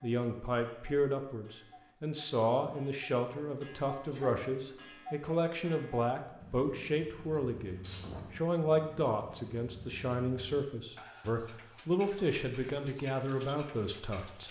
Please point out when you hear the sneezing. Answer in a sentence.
The sneezing can be heard from 4.0 to 4.5 s and from 7.8 to 8.3 s.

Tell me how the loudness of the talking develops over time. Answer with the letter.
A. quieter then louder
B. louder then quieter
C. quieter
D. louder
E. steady
E.